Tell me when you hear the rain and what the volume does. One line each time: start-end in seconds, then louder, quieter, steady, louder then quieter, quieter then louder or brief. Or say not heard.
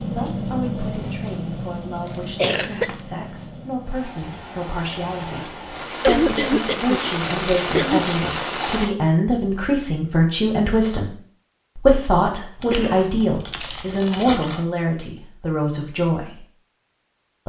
0.0-8.9 quieter then louder.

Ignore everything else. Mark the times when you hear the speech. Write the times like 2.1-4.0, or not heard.
0.0-11.1, 11.8-16.4.